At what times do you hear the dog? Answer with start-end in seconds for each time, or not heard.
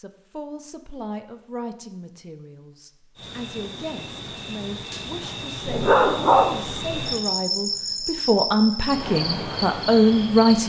5.7-7.0.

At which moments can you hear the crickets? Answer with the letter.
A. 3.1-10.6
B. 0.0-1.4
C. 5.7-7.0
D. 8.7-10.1
A.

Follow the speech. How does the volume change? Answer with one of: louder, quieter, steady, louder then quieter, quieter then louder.
louder.